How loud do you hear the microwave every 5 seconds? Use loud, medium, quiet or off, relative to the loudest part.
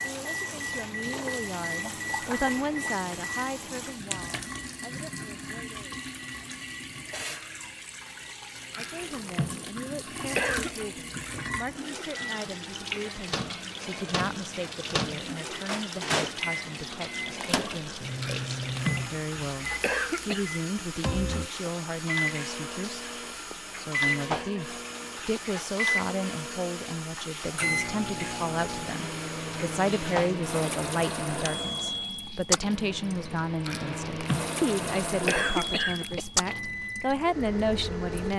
loud, quiet, medium, loud, loud, loud, loud, loud.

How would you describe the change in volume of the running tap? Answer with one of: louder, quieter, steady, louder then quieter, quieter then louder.
steady.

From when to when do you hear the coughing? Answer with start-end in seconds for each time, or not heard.
8.7-10.8, 18.2-20.4, 33.6-36.2.